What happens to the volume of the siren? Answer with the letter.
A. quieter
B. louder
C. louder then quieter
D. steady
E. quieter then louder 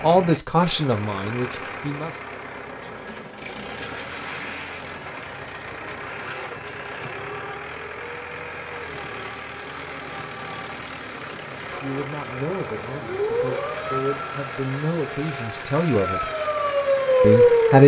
E.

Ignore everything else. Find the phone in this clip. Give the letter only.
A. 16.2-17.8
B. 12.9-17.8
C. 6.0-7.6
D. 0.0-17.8
C.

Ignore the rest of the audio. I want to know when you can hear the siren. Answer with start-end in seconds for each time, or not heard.
12.9-17.8.